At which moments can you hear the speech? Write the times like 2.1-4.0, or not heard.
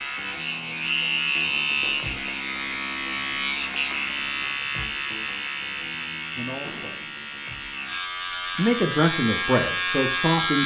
6.3-7.2, 8.6-10.6.